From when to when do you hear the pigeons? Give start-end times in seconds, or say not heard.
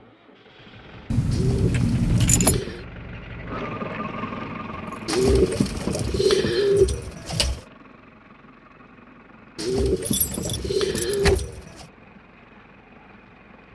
1.3-2.9, 5.0-7.6, 9.6-11.8.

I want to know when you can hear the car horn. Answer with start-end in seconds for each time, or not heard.
not heard.